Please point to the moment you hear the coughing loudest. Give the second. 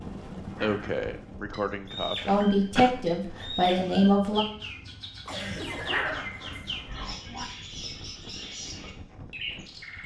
1 s.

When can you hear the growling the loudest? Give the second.
6 s.